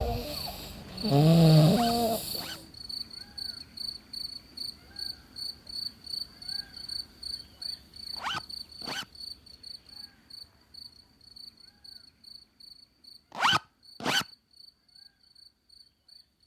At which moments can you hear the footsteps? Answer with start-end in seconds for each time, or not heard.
not heard.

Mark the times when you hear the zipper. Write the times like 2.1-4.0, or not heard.
1.6-2.6, 8.2-9.1, 13.3-14.2.